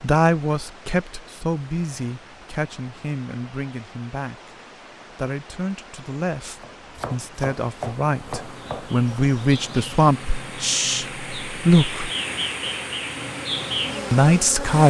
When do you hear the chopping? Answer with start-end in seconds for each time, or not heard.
6.5-9.0.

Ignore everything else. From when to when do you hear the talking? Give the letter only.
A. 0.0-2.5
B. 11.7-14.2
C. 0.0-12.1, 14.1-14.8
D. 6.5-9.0
C.